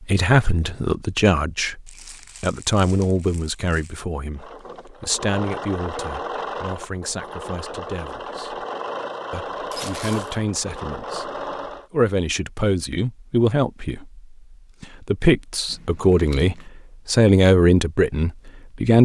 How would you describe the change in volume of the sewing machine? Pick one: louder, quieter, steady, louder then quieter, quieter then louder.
steady.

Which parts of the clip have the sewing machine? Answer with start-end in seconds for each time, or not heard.
4.3-11.9.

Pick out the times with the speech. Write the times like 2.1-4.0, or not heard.
0.1-8.7, 9.3-11.3, 11.9-19.0.